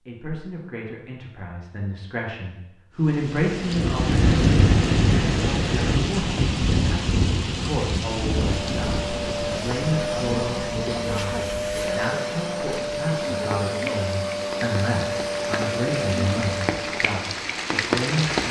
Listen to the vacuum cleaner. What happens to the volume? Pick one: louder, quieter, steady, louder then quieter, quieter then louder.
steady.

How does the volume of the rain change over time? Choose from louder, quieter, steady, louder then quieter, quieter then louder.
quieter then louder.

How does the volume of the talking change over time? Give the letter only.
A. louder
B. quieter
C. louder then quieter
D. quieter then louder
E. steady
E.